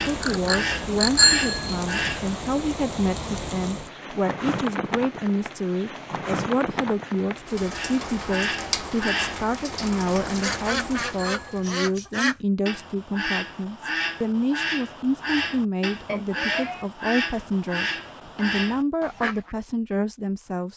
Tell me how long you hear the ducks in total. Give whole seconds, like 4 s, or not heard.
14 s.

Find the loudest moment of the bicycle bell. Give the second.
1 s.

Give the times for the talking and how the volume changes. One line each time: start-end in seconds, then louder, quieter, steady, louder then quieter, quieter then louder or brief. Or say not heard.
0.0-20.7 steady.